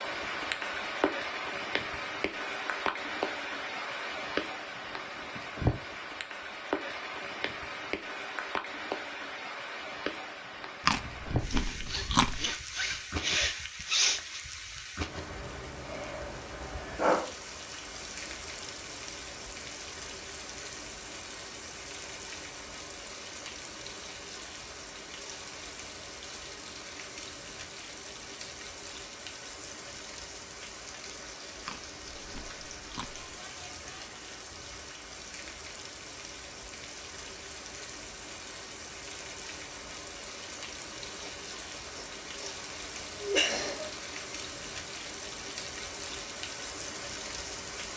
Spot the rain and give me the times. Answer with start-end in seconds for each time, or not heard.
0.0-47.9.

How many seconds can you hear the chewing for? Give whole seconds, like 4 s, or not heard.
3 s.